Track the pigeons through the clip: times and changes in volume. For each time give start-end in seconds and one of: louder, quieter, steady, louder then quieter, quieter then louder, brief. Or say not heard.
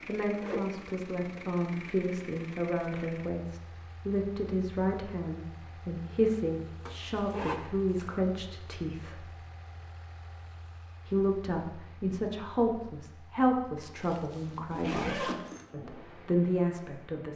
not heard.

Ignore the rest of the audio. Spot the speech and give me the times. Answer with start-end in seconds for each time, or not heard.
0.1-9.2, 11.1-17.3.